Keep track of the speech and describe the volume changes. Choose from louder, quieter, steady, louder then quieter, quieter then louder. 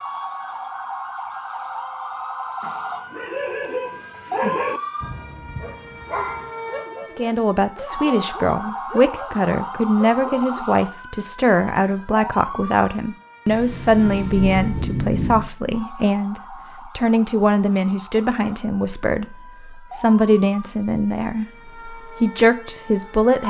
steady.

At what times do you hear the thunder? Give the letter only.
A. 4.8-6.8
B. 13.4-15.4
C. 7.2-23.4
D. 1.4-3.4
B.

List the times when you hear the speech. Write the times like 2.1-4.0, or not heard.
7.2-23.4.